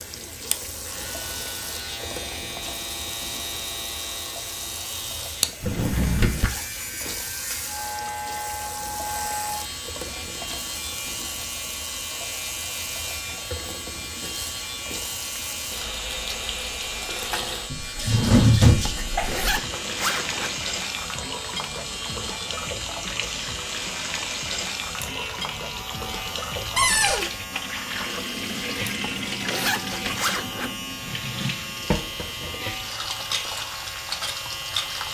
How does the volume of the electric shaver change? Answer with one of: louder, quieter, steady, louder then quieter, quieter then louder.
steady.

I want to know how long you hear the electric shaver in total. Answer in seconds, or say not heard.
35 s.